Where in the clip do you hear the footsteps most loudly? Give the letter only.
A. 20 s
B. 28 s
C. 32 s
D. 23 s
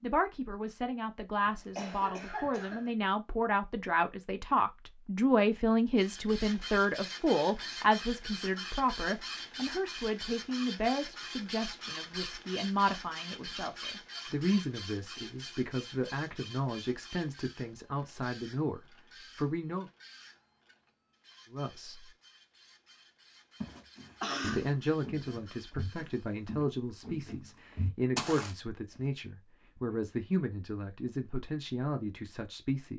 B.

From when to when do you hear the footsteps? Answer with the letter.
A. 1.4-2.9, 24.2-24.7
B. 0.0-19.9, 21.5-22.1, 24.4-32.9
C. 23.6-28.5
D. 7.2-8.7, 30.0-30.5
C.